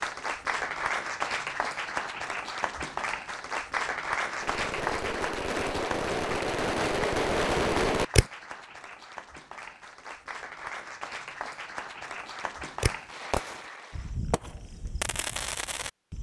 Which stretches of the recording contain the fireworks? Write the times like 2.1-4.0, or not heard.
4.4-8.2, 12.8-16.1.